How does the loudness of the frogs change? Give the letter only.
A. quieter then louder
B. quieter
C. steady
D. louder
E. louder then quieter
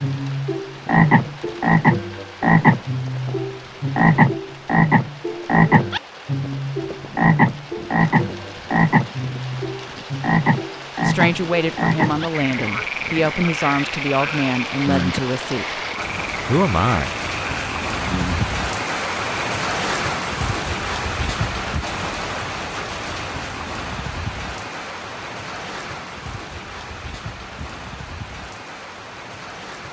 B.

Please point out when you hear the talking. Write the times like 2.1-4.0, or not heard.
11.0-15.8, 16.4-17.1.